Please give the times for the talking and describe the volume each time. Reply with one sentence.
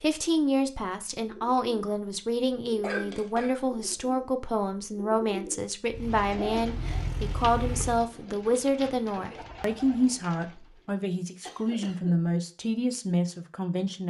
You can hear the talking from 0.0 to 14.0 s, at a steady volume.